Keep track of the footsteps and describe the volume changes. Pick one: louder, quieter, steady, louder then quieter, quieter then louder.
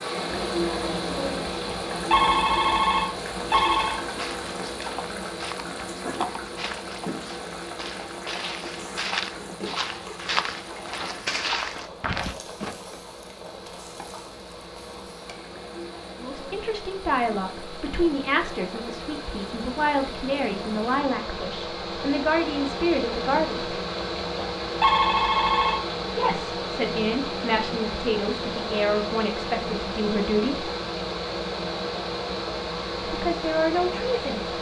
louder.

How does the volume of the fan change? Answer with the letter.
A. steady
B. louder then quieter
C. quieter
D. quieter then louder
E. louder
D.